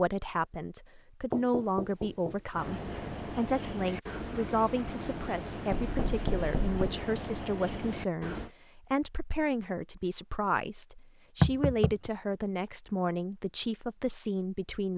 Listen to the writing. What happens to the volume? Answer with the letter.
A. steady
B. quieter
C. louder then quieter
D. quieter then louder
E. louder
A.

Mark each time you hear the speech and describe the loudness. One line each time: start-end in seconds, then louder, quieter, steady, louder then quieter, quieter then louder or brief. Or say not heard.
0.0-14.9 steady.